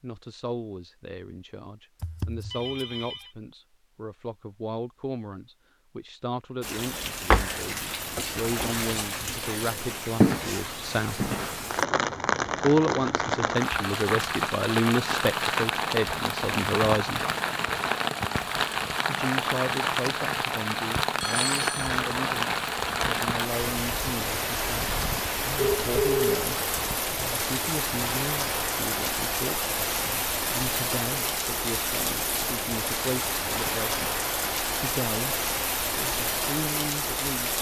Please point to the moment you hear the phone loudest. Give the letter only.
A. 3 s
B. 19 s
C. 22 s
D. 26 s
D.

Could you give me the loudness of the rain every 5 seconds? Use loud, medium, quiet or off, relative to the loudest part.
off, loud, loud, loud, loud, loud, loud, loud.